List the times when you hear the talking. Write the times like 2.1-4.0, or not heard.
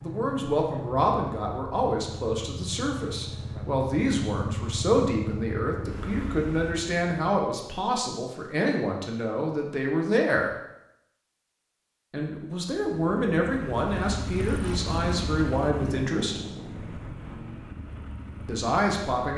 0.0-10.5, 12.1-16.4, 18.4-19.3.